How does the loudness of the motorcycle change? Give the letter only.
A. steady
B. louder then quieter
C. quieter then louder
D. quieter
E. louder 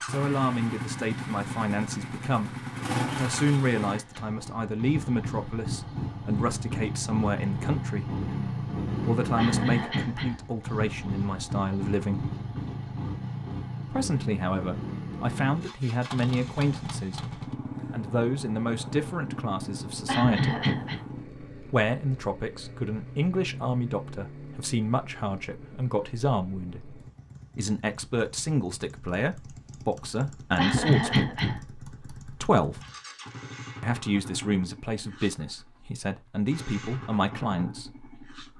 D.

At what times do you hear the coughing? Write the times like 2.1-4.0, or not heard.
9.3-10.4, 20.1-21.1, 30.6-31.6.